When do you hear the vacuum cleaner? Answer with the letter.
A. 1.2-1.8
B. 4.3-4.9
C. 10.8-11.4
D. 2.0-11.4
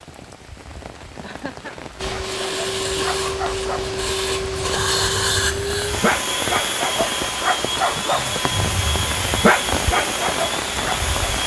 D.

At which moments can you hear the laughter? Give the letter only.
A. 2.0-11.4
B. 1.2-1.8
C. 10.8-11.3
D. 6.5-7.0
B.